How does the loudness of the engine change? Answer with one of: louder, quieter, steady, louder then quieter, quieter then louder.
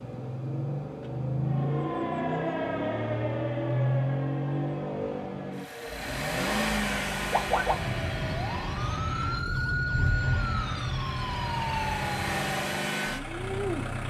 quieter then louder.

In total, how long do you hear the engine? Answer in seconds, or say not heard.
14 s.